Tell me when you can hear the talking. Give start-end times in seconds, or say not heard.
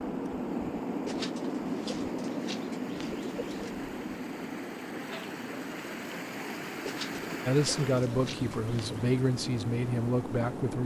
7.5-10.8.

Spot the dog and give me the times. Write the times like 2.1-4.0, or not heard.
not heard.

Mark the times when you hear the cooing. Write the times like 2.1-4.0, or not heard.
1.1-3.8, 6.8-9.1.